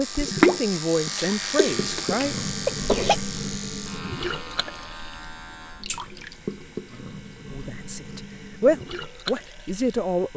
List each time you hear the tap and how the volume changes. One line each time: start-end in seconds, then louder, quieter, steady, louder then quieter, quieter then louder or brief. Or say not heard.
0.0-10.3 quieter.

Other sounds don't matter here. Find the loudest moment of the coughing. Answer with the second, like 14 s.
3 s.